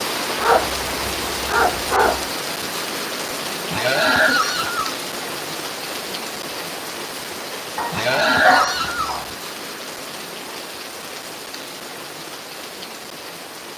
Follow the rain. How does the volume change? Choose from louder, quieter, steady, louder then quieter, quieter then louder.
quieter.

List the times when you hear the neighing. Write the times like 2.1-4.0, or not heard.
3.7-5.0, 7.9-9.2.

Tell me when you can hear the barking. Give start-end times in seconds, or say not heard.
0.3-2.2, 7.8-9.3.